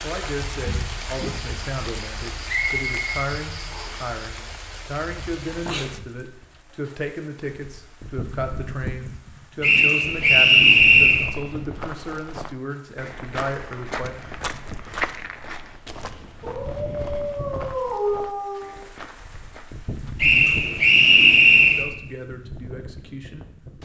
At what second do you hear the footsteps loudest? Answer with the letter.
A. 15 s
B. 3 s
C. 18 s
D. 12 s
A.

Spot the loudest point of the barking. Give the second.
18 s.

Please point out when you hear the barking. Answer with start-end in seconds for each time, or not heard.
16.4-18.8.